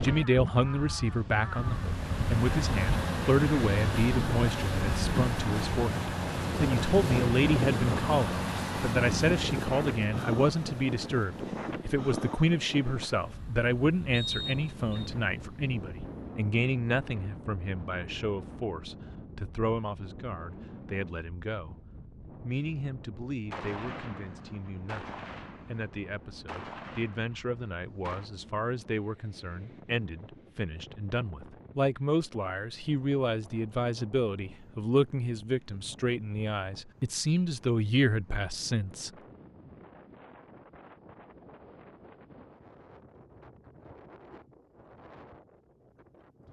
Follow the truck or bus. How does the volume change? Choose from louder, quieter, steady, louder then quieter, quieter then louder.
quieter.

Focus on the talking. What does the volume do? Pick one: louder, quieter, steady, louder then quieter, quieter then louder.
quieter then louder.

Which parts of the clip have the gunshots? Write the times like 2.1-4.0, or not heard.
23.5-28.3.